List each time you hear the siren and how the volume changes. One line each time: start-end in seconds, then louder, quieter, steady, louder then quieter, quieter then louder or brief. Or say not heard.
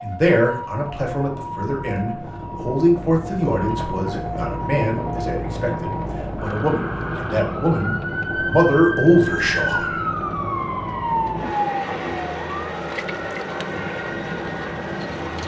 0.0-15.4 louder then quieter.